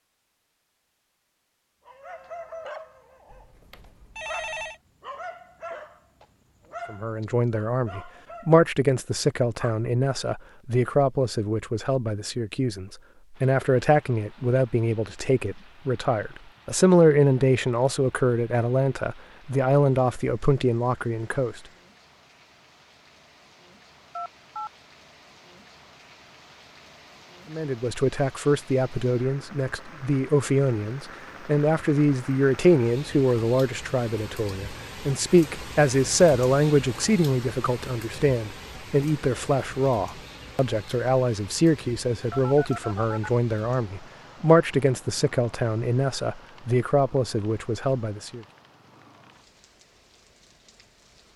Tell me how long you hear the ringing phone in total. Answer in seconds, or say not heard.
3 s.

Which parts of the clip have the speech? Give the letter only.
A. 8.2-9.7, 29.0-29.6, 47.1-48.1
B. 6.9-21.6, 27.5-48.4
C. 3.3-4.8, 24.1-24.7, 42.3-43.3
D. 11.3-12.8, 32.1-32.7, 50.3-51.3
B.